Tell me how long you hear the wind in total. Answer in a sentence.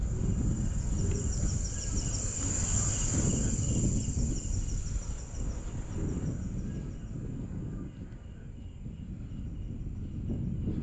The wind can be heard for 11 seconds in total.